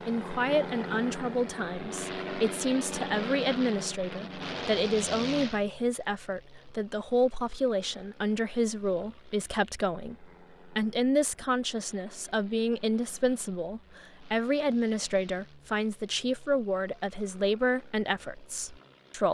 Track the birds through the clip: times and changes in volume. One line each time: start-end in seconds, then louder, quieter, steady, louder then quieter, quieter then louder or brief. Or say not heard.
not heard.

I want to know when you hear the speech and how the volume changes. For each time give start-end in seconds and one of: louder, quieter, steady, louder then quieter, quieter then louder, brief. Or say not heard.
0.1-19.3 steady.